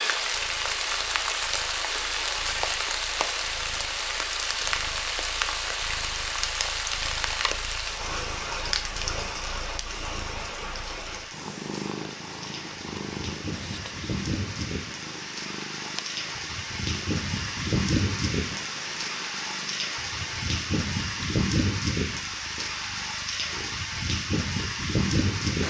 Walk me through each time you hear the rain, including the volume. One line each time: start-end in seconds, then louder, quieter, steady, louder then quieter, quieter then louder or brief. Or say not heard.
0.0-25.6 quieter then louder.